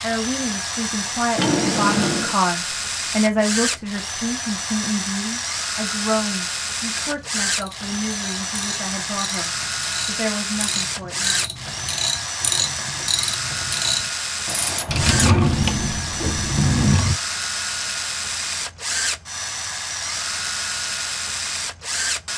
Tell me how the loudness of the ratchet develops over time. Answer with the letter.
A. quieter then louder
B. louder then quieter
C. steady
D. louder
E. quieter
D.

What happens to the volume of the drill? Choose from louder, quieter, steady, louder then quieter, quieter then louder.
steady.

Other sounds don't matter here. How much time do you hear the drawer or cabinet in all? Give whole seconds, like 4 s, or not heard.
3 s.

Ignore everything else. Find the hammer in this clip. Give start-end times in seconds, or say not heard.
not heard.